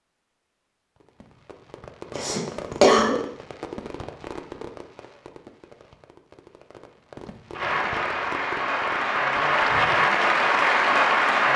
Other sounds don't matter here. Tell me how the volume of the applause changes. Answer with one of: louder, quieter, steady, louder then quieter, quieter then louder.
louder.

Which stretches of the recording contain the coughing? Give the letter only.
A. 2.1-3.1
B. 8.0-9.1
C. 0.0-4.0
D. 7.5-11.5
A.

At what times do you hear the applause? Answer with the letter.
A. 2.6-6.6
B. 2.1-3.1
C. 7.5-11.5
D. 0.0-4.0
C.